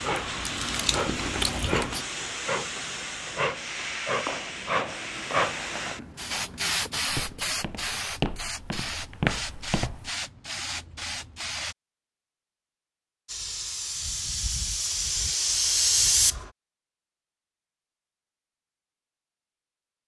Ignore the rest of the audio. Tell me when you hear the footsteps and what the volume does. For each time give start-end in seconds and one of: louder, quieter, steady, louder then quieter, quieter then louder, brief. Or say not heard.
4.2-10.1 louder.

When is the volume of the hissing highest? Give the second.
16 s.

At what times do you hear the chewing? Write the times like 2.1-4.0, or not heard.
0.0-2.0.